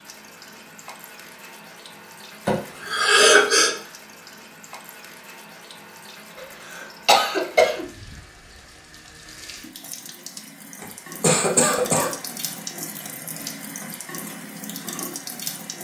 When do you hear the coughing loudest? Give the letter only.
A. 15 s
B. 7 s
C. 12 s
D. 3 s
D.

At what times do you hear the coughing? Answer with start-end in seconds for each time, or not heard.
2.5-3.7, 6.3-7.8, 10.8-12.2.